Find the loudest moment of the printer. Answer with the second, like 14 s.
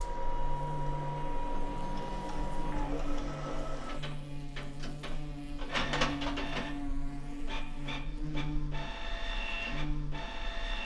6 s.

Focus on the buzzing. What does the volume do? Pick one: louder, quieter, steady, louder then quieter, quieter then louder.
steady.